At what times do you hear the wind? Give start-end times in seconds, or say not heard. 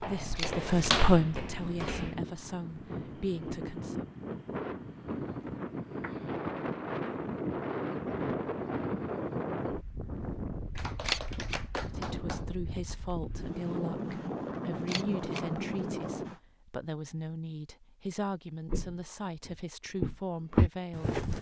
0.1-16.4.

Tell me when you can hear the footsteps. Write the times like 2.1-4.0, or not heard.
0.0-2.1, 18.7-21.3.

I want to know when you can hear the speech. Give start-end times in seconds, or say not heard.
0.0-4.0, 11.8-21.2.